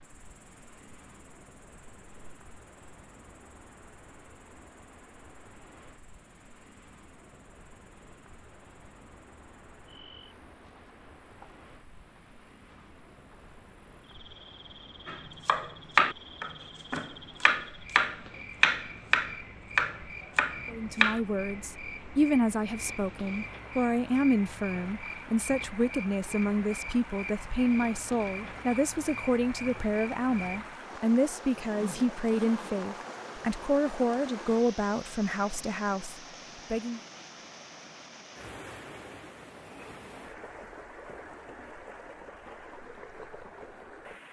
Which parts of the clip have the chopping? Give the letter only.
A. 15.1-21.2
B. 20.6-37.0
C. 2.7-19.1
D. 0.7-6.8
A.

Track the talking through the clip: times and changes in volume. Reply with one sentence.
You can hear the talking from 20.6 to 37.0 s, at a steady volume.